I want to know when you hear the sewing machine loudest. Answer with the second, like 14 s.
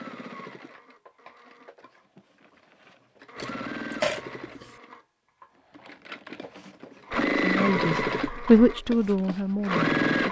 8 s.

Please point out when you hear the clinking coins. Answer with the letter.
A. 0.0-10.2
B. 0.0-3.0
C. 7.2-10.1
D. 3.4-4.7
D.